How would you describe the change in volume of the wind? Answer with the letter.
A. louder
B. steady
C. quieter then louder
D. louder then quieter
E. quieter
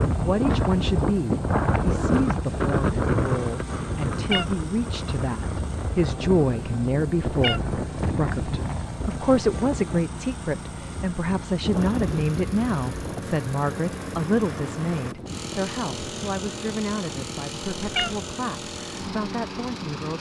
E.